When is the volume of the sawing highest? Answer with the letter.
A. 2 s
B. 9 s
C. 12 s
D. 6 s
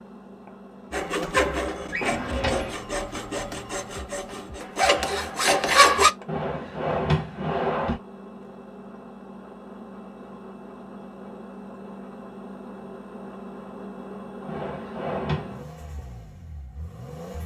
D.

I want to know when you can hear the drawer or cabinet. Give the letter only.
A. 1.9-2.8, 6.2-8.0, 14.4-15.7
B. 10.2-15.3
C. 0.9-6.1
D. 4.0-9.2
A.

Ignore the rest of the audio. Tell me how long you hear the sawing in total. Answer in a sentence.
The sawing can be heard for 5 seconds in total.